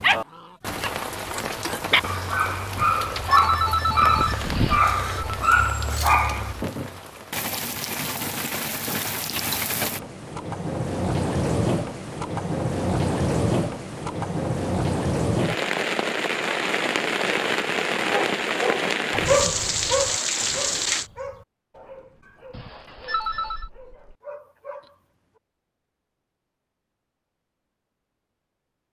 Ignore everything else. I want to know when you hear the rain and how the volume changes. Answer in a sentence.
The rain can be heard from 0.0 to 21.1 s, getting louder.